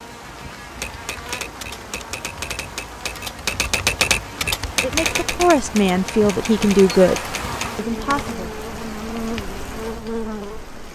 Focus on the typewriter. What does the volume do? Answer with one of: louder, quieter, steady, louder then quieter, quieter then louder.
louder then quieter.